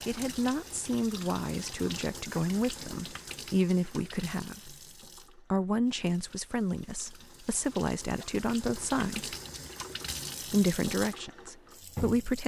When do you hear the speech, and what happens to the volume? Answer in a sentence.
You can hear the speech from 0.1 to 4.8 s, getting quieter then louder; from 5.3 to 9.3 s, getting quieter then louder; and briefly from 10.5 to 12.4 s.